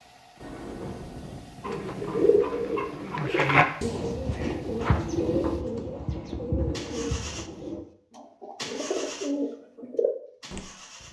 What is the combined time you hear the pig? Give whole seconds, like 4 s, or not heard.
not heard.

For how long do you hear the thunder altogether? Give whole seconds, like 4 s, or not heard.
2 s.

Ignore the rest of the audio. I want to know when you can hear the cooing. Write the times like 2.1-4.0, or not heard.
1.6-10.6.